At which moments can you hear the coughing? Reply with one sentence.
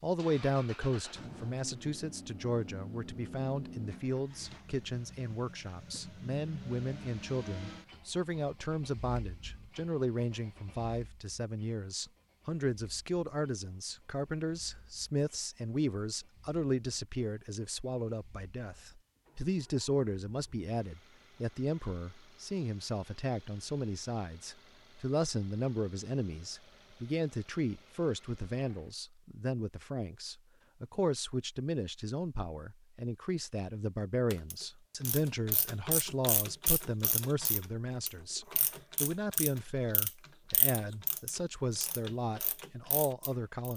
You can't hear the coughing here.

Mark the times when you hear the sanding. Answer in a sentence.
The sanding can't be heard in this clip.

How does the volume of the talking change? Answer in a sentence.
The volume of the talking stays about the same.